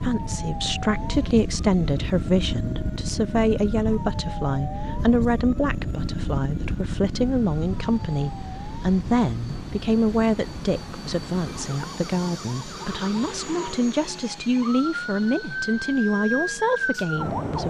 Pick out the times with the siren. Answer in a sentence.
You can hear the siren from 0.0 to 17.6 s.